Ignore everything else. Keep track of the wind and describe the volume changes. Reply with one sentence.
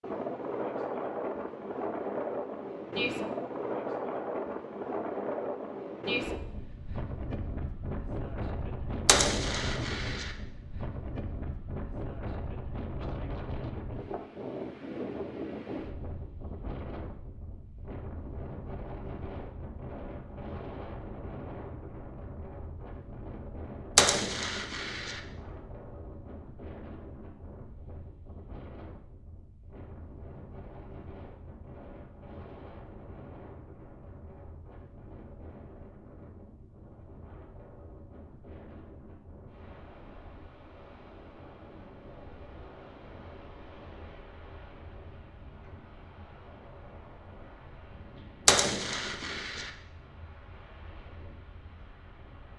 The volume of the wind goes down.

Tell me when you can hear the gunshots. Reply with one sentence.
You can hear the gunshots from 9.1 to 10.3 s, from 23.9 to 25.2 s and from 48.5 to 49.7 s.